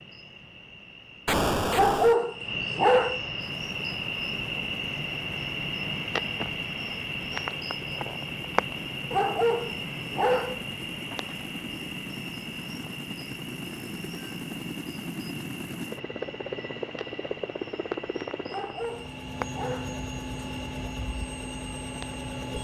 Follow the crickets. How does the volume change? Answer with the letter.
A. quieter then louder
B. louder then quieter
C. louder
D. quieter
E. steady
D.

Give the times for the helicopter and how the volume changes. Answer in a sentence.
You can hear the helicopter from 3.4 to 22.5 s, getting louder.